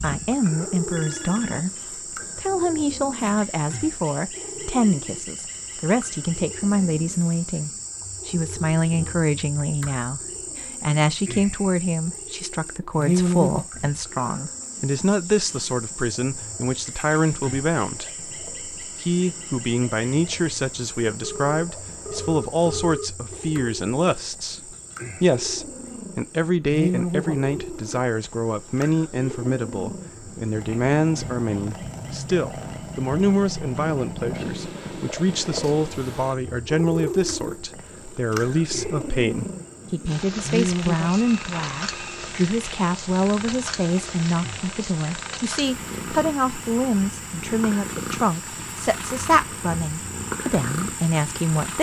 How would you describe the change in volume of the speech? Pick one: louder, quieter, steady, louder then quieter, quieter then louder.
steady.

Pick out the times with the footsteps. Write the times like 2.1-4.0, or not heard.
not heard.